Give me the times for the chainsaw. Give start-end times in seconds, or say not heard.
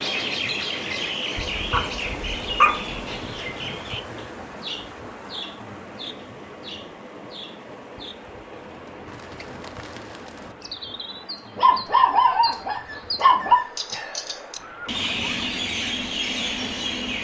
not heard.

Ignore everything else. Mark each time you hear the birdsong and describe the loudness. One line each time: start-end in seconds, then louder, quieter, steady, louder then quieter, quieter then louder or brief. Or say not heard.
0.0-17.1 quieter then louder.